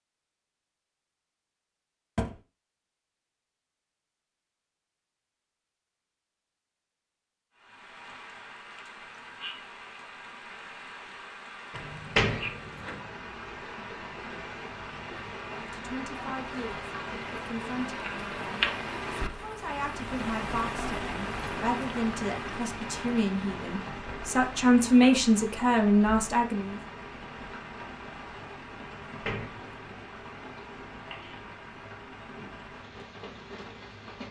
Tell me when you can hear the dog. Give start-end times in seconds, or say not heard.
not heard.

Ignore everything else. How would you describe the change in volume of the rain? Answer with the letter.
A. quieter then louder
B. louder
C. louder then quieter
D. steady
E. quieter
C.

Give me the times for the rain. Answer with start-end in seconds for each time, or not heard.
7.5-34.2.